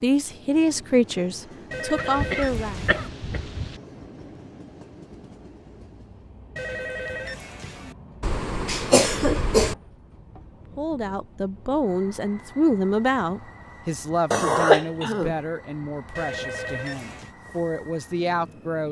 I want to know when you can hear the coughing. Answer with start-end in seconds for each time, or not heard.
1.9-3.8, 8.2-9.8, 14.3-15.3.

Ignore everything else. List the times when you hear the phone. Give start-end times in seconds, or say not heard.
1.7-3.1, 6.5-8.0, 16.1-17.4.